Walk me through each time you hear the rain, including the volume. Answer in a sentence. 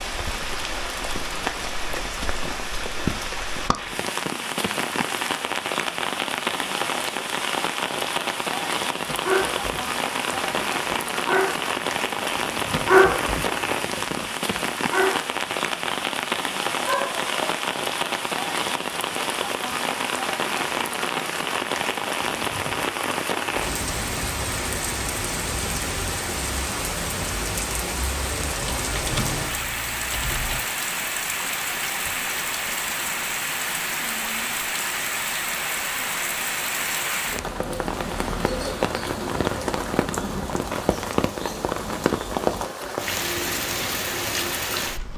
You can hear the rain from 0.0 to 45.1 s, at a steady volume.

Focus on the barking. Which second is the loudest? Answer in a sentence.
The volume of the barking peaks at 13 seconds.